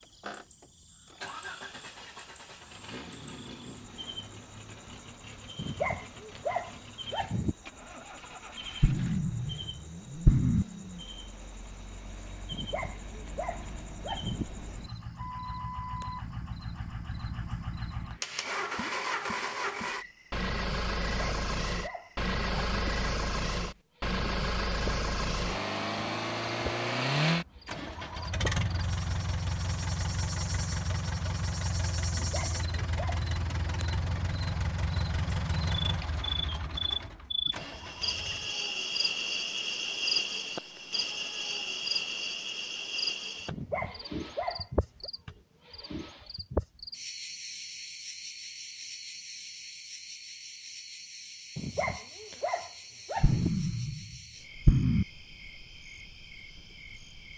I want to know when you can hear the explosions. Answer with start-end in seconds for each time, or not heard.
8.8-9.7, 10.2-10.7, 53.2-55.0.